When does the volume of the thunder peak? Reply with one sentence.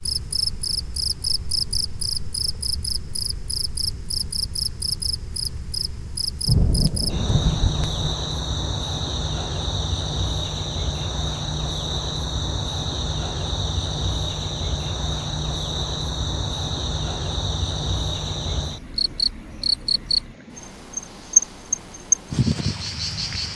The volume of the thunder peaks at 7 seconds.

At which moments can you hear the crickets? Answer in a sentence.
The crickets can be heard from 0.0 to 23.5 s.